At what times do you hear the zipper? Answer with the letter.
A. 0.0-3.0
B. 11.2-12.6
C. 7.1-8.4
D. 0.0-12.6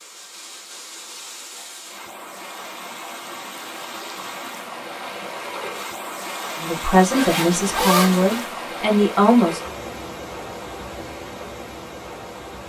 C.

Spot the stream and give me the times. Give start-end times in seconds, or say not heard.
0.0-12.6.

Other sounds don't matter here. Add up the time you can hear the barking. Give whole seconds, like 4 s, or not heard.
not heard.